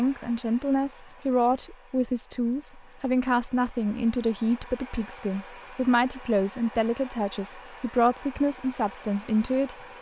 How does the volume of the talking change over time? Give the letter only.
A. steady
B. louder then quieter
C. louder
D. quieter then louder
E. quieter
A.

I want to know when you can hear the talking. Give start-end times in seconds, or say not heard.
0.0-9.9.